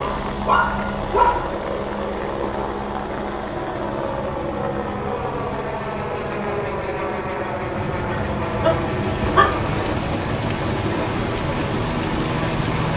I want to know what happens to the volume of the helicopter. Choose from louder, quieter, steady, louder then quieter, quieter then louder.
steady.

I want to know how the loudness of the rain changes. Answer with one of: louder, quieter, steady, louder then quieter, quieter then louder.
louder.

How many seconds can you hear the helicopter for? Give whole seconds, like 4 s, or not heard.
13 s.